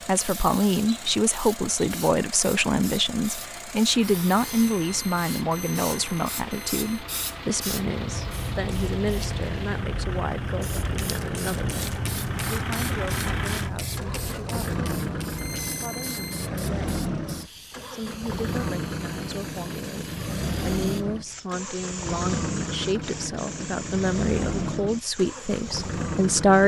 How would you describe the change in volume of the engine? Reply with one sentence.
The loudness of the engine goes up.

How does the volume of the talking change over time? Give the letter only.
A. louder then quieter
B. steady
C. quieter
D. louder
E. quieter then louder
E.